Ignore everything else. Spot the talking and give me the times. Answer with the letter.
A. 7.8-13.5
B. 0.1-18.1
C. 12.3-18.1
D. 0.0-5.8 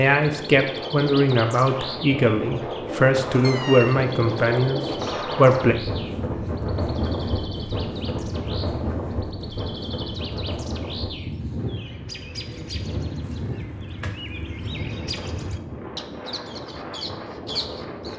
D.